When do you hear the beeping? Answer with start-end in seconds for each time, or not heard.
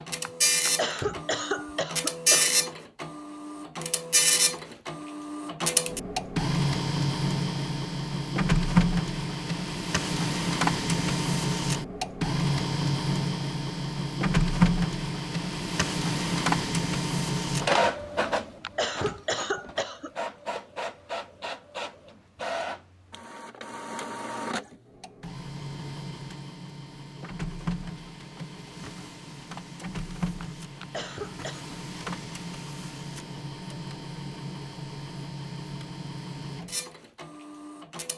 not heard.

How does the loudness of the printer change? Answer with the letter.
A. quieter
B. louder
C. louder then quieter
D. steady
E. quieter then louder
A.